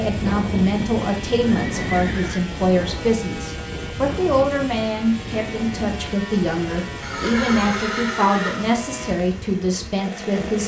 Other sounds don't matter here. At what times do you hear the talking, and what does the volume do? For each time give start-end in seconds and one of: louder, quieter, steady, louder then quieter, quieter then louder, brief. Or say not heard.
0.0-10.6 steady.